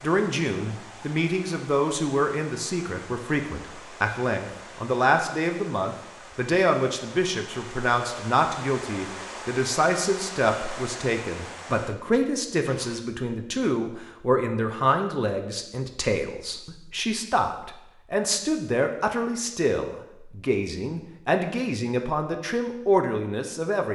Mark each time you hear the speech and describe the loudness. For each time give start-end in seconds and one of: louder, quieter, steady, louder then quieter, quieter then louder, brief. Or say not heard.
0.0-23.9 steady.